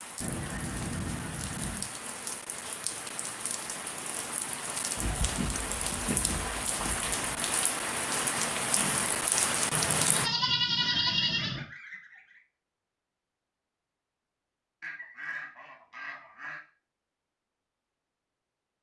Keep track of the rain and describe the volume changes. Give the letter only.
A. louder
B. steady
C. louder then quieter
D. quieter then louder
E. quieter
A.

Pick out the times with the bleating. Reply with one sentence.
The bleating can be heard from 9.7 to 11.7 s.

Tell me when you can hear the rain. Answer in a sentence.
The rain can be heard from 0.0 to 10.3 s.